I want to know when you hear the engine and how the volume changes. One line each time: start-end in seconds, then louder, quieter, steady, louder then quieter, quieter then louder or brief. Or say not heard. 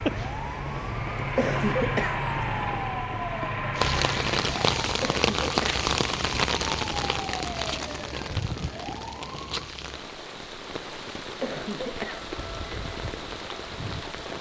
0.0-4.8 louder.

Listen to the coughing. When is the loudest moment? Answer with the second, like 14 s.
2 s.